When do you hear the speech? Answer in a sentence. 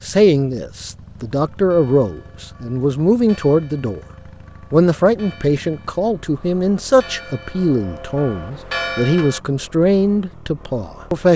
The speech can be heard from 0.1 to 4.0 s and from 4.7 to 11.3 s.